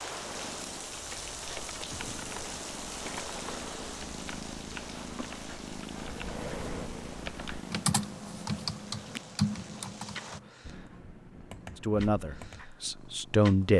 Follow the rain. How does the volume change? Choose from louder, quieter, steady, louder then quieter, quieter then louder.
quieter.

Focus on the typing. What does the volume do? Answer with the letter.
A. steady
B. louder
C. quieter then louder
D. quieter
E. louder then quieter
E.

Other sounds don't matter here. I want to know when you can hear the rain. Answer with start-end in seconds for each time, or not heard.
0.0-10.4.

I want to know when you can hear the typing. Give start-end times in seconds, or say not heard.
0.9-12.7.